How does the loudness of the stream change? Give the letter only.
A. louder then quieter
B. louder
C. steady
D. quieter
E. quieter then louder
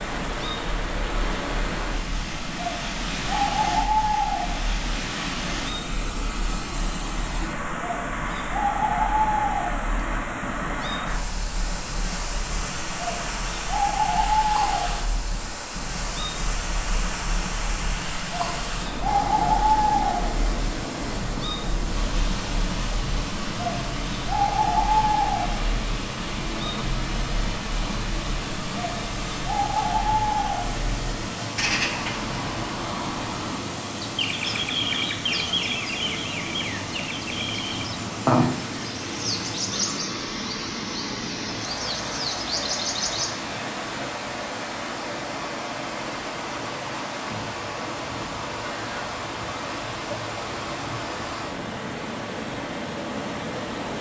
C.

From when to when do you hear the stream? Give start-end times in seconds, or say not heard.
0.0-53.9.